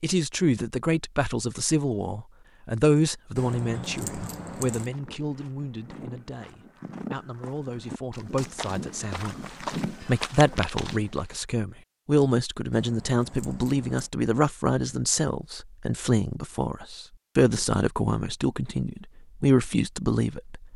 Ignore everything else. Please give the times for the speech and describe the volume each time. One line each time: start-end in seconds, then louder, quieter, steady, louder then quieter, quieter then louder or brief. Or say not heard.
0.0-20.7 quieter then louder.